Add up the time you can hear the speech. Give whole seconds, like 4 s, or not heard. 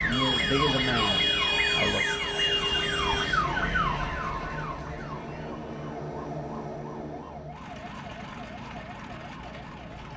2 s.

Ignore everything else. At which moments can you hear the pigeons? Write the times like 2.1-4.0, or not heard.
not heard.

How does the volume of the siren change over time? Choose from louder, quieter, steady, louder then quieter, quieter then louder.
quieter.